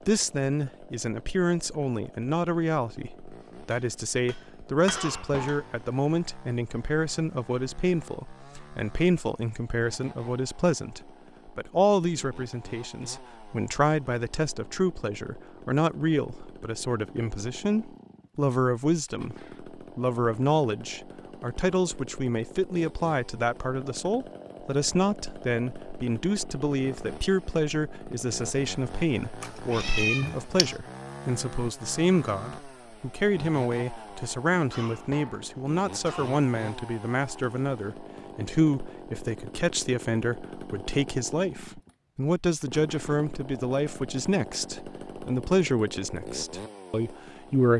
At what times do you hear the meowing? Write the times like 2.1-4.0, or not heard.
29.4-30.8.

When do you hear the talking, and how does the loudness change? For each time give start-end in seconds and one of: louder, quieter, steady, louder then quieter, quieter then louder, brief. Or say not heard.
0.1-47.7 steady.